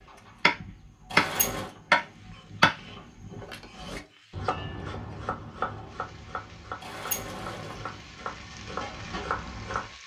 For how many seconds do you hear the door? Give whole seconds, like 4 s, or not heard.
2 s.